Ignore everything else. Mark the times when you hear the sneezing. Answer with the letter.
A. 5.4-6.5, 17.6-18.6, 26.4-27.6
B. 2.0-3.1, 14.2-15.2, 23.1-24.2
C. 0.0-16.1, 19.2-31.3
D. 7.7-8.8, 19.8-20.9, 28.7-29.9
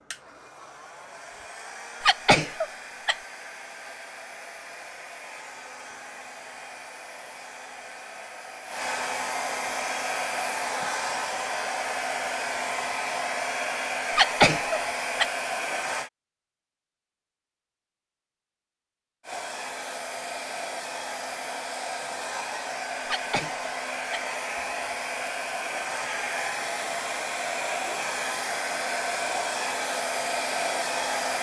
B.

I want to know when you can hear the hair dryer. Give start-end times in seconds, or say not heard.
0.0-16.1, 19.2-31.3.